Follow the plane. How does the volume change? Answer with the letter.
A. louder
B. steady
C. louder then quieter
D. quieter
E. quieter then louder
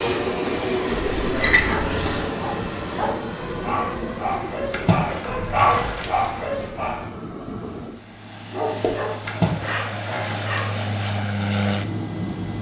E.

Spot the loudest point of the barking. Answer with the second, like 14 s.
6 s.